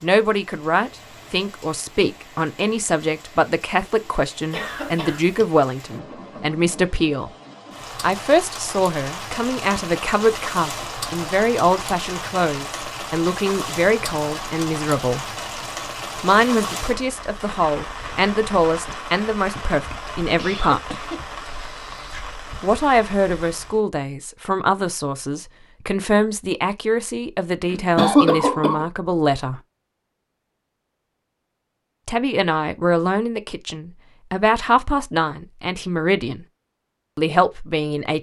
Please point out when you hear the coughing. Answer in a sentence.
The coughing can be heard from 4.5 to 5.5 s, from 20.4 to 22.2 s and from 27.7 to 28.9 s.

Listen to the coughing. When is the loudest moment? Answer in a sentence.
The loudest moment of the coughing is at 28 seconds.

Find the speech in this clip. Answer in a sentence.
You can hear the speech from 0.0 to 7.3 s, from 8.0 to 15.2 s, from 16.2 to 21.0 s, from 22.6 to 29.6 s, from 32.0 to 36.5 s and from 37.1 to 38.1 s.